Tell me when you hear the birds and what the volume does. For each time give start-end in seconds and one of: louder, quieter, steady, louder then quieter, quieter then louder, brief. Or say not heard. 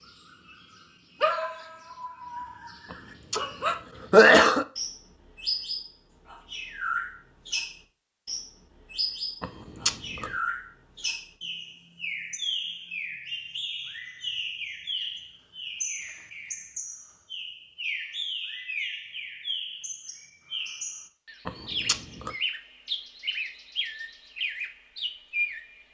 0.0-25.8 steady.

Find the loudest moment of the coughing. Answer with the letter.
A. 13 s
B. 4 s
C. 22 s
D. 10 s
B.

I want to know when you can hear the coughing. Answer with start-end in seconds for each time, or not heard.
2.9-4.7, 9.4-10.3, 21.4-22.3.